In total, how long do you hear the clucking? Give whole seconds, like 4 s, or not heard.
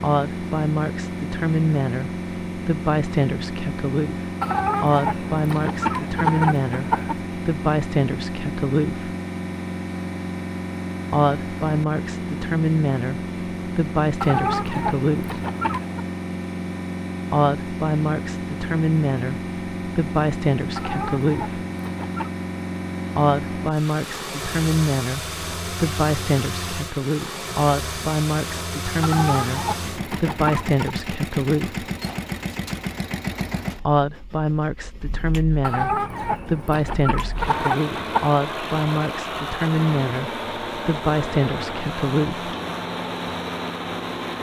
11 s.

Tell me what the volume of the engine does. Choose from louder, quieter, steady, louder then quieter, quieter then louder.
steady.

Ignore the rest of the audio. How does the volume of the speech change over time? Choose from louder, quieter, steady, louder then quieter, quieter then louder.
steady.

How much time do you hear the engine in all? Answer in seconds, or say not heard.
44 s.